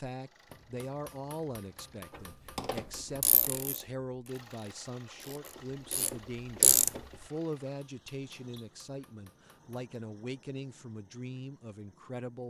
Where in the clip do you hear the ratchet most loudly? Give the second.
7 s.